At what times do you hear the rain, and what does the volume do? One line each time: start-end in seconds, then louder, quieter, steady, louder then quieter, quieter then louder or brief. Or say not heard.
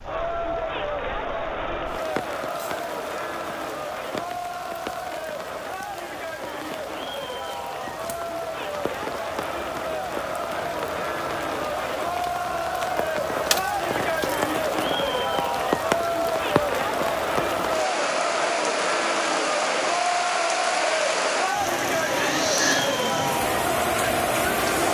0.0-24.8 louder.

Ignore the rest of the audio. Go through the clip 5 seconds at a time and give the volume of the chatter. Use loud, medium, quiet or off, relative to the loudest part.
medium, medium, loud, loud, loud.